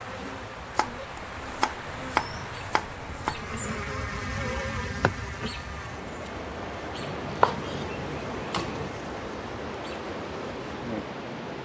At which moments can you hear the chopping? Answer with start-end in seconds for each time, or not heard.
0.8-3.5, 7.0-8.9.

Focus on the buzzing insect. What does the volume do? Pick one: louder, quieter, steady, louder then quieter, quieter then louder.
louder then quieter.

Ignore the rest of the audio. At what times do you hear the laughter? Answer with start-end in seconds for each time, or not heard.
not heard.